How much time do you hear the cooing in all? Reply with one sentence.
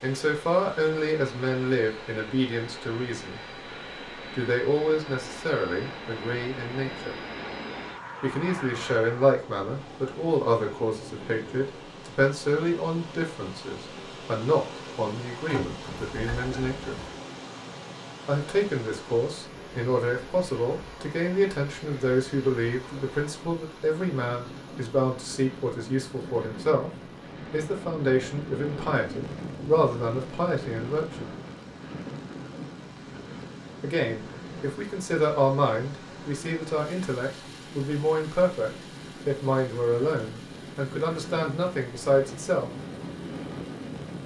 The cooing can be heard for 2 seconds in total.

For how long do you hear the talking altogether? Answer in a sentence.
You can hear the talking for 36 seconds altogether.